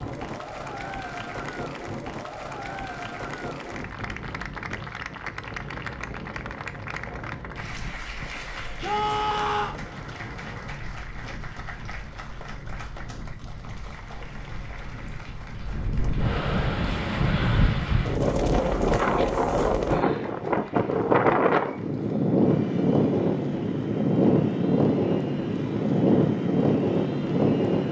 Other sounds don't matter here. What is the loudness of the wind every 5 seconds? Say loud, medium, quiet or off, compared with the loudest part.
quiet, quiet, quiet, loud, loud, loud.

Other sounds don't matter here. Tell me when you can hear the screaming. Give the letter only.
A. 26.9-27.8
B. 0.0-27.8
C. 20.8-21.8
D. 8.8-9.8
D.